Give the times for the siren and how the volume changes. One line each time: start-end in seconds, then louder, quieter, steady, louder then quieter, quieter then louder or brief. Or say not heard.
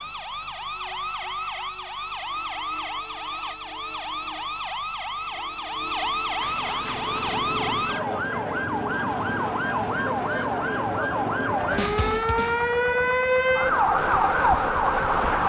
0.0-15.4 louder.